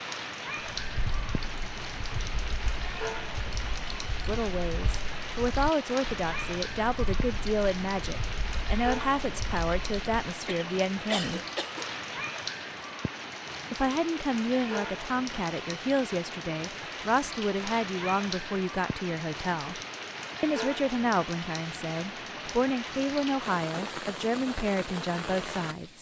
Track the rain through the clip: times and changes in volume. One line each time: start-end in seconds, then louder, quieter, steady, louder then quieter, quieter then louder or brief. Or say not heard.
0.0-25.9 steady.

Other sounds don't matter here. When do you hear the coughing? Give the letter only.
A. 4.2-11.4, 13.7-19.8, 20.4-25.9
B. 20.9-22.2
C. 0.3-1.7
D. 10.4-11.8
D.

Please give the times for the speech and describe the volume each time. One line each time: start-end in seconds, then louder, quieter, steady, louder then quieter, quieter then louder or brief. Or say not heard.
4.2-11.4 steady
13.7-19.8 steady
20.4-25.9 steady.